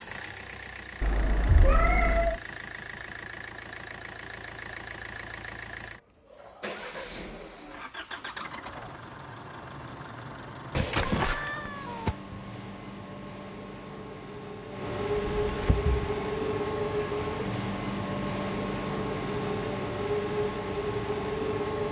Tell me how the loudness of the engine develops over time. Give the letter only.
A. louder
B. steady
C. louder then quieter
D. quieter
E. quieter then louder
A.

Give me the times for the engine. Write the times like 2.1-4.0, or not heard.
0.0-21.8.